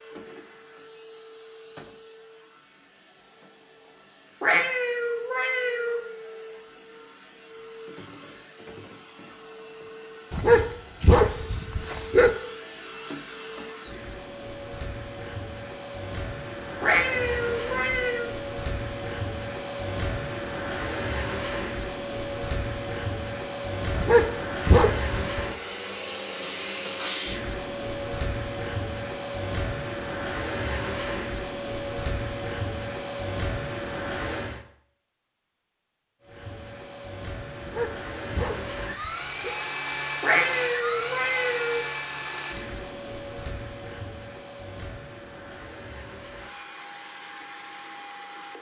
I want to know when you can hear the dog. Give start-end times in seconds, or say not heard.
10.3-12.3, 23.9-25.4, 37.6-39.5.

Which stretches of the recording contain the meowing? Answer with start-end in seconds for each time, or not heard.
4.4-6.0, 16.8-18.3, 40.2-41.9.